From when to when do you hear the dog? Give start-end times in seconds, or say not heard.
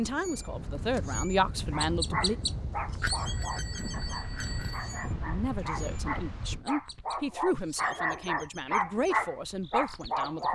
1.7-10.4.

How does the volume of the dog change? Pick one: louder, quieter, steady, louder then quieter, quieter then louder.
quieter then louder.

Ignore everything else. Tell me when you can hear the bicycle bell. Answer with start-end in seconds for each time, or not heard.
3.0-5.0.